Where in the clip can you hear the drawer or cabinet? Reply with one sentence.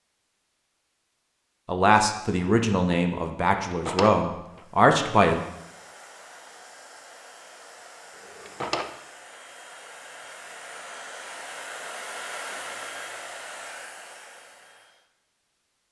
The drawer or cabinet can be heard from 3.6 to 4.7 s and from 8.2 to 8.9 s.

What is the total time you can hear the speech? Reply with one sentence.
The speech can be heard for 4 seconds in total.